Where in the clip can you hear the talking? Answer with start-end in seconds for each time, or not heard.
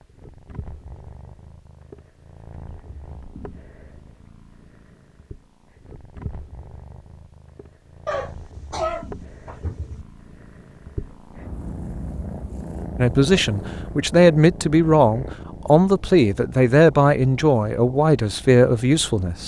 12.9-19.4.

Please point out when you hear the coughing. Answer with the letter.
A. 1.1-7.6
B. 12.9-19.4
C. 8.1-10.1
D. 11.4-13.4
C.